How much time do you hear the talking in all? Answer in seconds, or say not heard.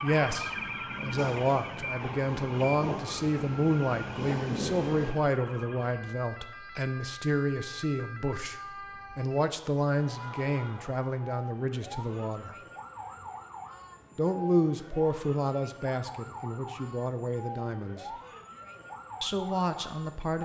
18 s.